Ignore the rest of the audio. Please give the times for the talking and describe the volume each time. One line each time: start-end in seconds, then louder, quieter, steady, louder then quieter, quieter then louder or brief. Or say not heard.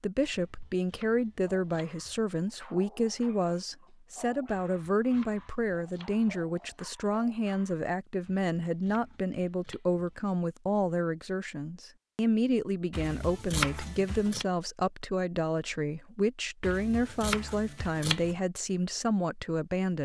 0.0-19.9 steady.